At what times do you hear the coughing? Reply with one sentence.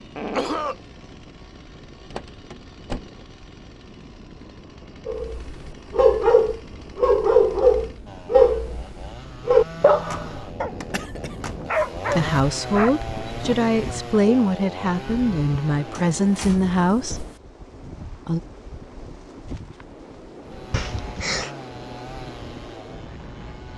The coughing can be heard from 0.1 to 0.8 s, from 10.8 to 11.9 s and from 20.7 to 21.5 s.